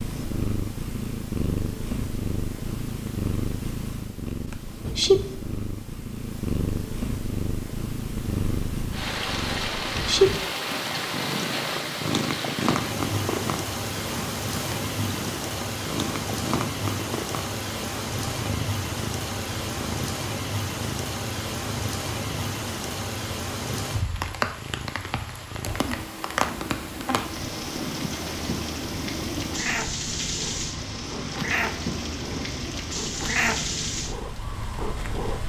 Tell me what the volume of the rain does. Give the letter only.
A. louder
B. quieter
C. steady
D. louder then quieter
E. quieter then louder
C.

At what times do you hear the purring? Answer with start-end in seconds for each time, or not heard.
0.0-35.4.